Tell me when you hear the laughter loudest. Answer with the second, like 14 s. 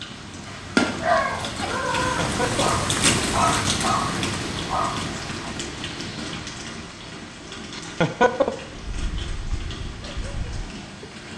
8 s.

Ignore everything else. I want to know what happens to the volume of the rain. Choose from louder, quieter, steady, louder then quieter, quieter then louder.
quieter.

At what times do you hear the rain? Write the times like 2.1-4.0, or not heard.
0.0-11.3.